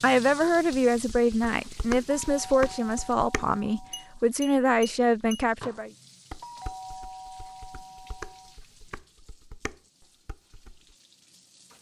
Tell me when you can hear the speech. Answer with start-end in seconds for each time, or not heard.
0.0-5.9.